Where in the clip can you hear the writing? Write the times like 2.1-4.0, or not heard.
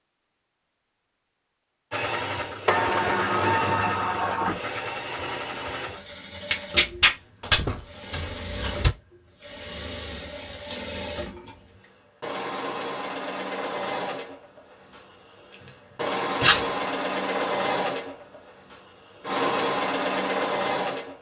not heard.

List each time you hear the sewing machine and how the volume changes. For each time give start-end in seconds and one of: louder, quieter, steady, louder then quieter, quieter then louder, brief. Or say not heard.
1.9-21.1 quieter then louder.